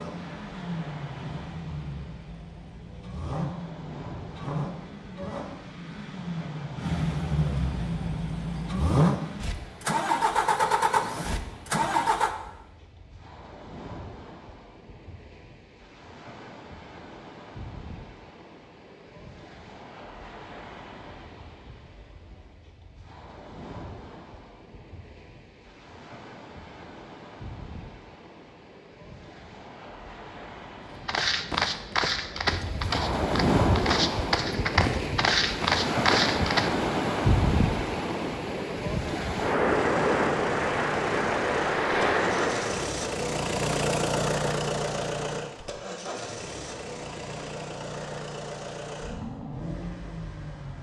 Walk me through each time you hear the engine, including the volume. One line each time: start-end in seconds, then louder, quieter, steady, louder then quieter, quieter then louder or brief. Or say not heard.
0.0-12.3 louder
39.6-50.7 louder then quieter.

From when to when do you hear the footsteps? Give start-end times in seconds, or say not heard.
31.0-36.8.